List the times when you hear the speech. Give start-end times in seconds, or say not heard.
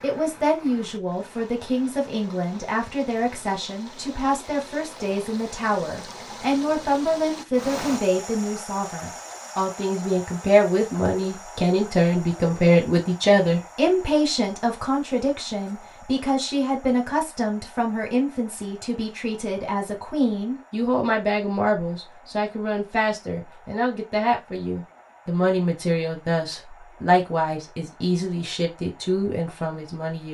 0.0-30.2.